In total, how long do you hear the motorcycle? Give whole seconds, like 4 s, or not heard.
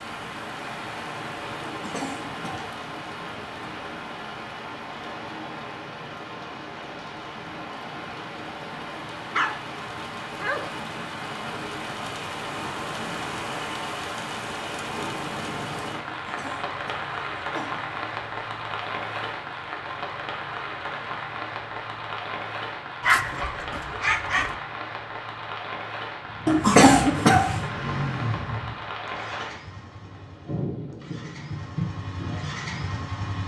7 s.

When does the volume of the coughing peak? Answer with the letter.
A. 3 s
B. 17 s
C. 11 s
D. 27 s
D.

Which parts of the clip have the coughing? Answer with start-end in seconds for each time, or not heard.
1.6-2.8, 16.1-17.9, 26.4-27.6.